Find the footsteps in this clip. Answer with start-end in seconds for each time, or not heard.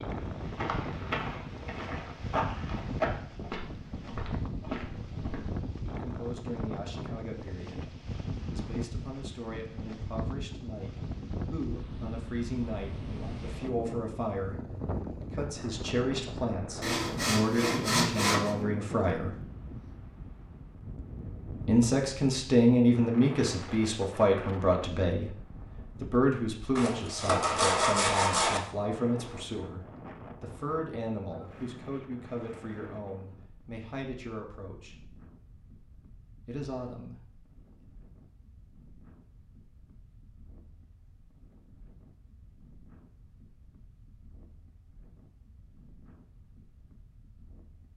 0.1-5.4.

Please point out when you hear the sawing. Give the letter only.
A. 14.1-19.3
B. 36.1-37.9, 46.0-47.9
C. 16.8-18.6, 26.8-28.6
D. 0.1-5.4
C.